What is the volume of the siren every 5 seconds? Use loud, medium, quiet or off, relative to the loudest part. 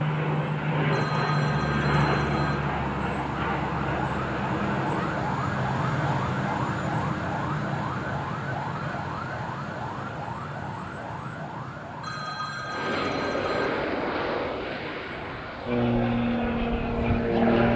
loud, loud, medium, quiet.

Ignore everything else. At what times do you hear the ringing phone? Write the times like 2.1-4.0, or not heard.
0.9-2.6, 12.0-13.7.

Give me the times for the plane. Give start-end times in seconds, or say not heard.
0.0-5.2, 12.7-17.7.